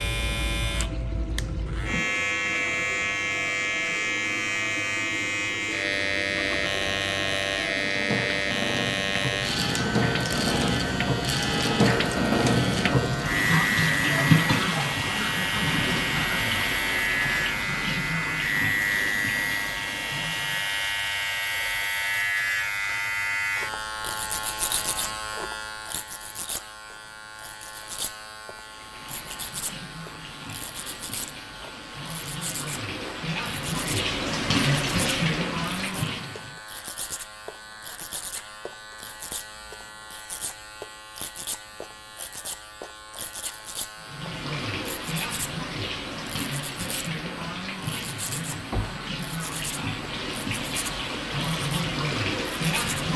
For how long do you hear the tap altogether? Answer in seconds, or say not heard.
38 s.